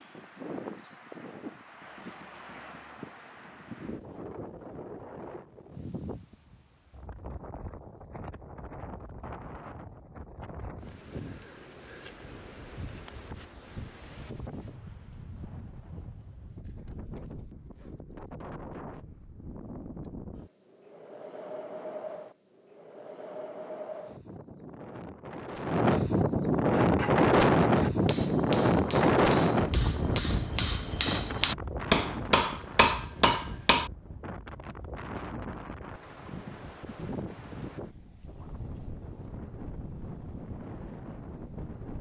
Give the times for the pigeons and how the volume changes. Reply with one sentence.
You can't hear the pigeons here.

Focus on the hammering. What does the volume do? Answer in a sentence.
The volume of the hammering goes up.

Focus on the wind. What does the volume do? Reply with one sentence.
The loudness of the wind goes up, then down.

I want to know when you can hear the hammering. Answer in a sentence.
The hammering can be heard from 26.7 to 33.9 s.